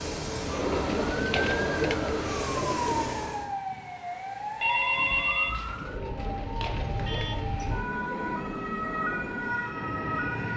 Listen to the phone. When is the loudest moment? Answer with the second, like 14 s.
5 s.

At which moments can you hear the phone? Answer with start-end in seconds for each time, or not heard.
4.6-7.2.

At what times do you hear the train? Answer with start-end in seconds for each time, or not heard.
0.0-3.5, 7.5-10.5.